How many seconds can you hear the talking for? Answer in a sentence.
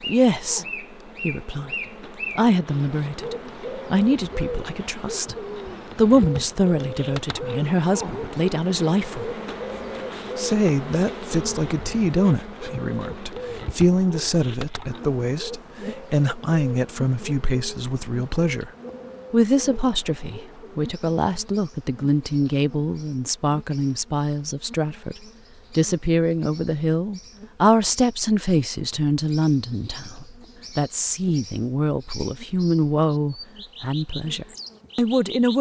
The talking can be heard for 33 seconds in total.